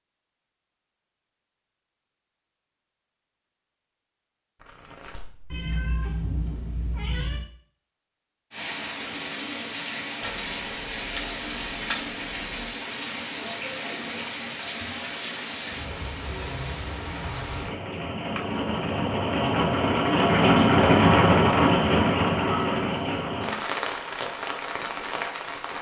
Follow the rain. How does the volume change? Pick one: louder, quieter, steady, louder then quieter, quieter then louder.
louder then quieter.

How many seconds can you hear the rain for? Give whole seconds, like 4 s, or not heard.
17 s.